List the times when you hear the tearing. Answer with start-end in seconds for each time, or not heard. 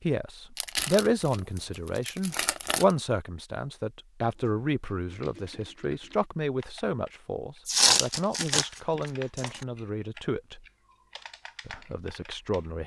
0.6-3.0, 7.7-9.7.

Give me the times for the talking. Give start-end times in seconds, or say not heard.
0.0-10.7, 11.7-12.8.